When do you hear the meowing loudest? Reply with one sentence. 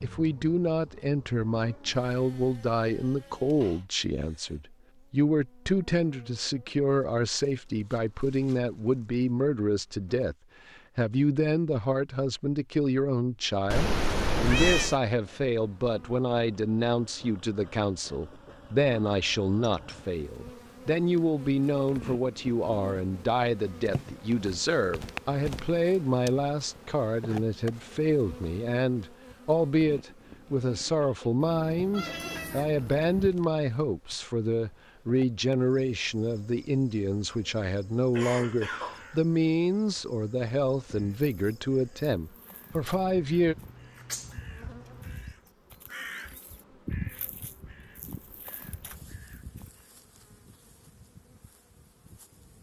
The volume of the meowing peaks at 15 seconds.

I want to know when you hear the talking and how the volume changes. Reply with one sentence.
The talking can be heard from 0.0 to 43.5 s, at a steady volume.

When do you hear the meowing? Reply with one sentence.
You can hear the meowing from 13.7 to 15.0 s, from 31.4 to 33.3 s and from 42.9 to 45.1 s.